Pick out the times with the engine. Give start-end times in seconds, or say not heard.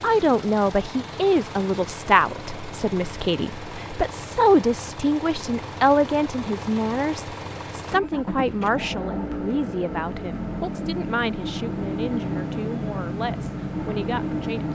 0.0-14.6.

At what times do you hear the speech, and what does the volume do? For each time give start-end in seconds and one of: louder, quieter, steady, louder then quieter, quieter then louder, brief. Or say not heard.
0.0-14.6 quieter.